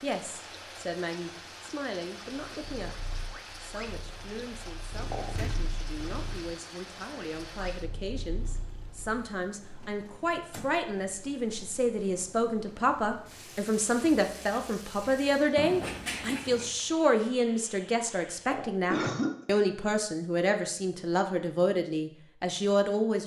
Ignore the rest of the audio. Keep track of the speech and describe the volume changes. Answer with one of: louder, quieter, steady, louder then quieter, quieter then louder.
louder.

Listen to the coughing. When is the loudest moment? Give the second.
19 s.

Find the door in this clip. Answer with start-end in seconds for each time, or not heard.
5.3-5.7, 9.8-10.8, 15.6-16.8.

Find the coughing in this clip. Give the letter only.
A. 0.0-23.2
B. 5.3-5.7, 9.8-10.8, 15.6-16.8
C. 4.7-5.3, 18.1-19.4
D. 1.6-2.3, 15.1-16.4
C.